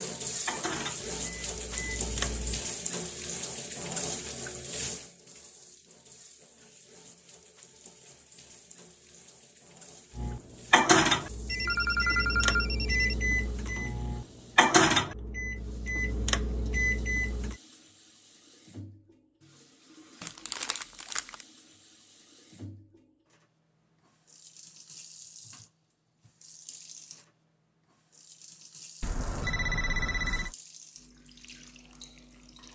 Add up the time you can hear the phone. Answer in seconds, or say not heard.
3 s.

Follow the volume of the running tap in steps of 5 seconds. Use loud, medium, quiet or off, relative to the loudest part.
loud, quiet, quiet, quiet, quiet, quiet, quiet.